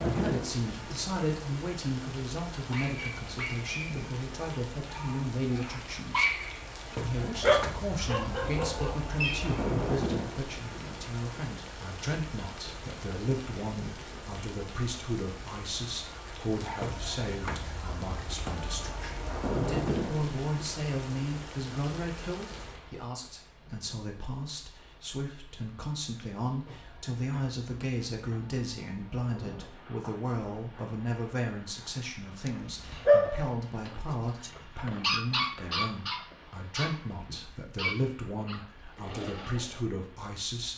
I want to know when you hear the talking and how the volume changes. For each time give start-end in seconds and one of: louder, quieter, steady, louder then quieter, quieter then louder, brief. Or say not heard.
0.0-40.7 steady.